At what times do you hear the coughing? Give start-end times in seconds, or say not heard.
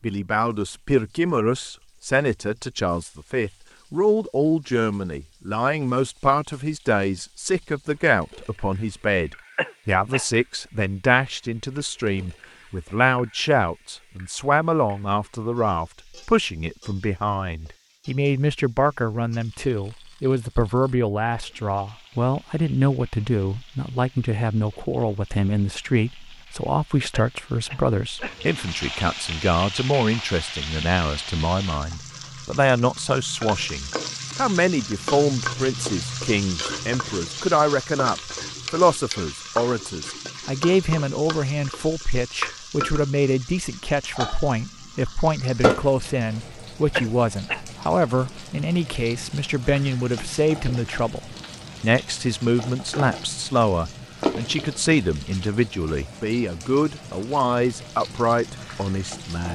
9.6-10.2, 27.1-28.4, 47.0-47.6.